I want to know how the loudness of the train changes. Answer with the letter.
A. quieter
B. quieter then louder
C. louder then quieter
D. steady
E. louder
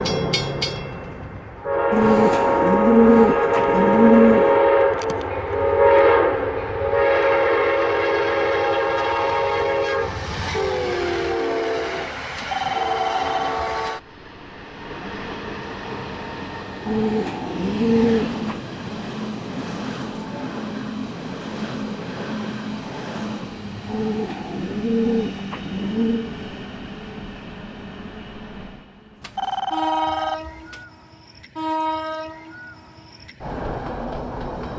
A.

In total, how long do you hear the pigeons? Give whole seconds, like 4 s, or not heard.
7 s.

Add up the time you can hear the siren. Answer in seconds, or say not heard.
not heard.